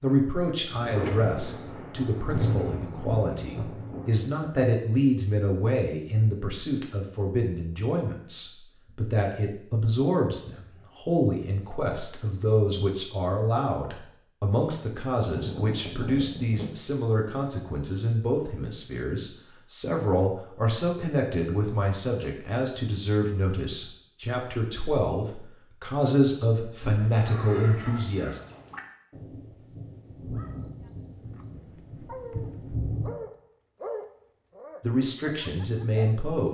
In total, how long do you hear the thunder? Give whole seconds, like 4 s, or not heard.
9 s.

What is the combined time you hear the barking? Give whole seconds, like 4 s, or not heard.
6 s.